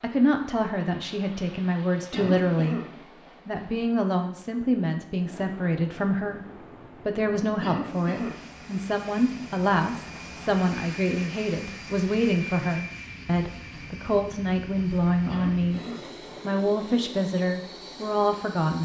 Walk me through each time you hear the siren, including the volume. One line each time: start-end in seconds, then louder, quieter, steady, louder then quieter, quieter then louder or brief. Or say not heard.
not heard.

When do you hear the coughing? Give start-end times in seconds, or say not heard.
2.1-2.9, 7.6-8.4, 15.2-16.1.